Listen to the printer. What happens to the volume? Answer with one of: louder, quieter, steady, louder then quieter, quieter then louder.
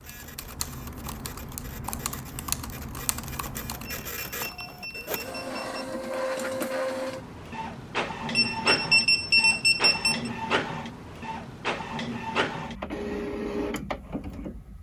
louder.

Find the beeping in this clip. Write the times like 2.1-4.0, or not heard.
3.9-5.8, 8.3-10.3.